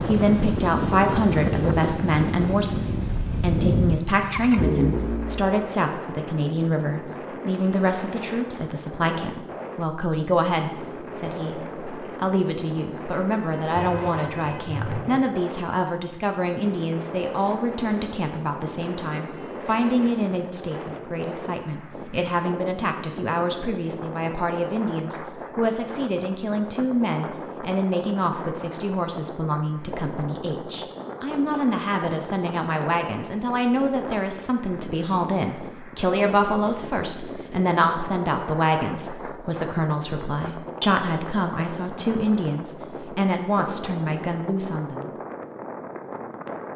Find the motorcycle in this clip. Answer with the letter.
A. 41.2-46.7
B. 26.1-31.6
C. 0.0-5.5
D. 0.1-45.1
C.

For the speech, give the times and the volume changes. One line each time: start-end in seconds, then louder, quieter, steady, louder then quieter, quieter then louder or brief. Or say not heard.
0.1-45.1 steady.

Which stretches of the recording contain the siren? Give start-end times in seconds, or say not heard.
not heard.